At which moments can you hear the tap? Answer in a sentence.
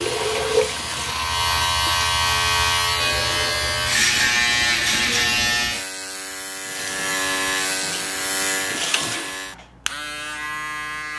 The tap can be heard from 0.0 to 1.9 s and from 6.6 to 9.4 s.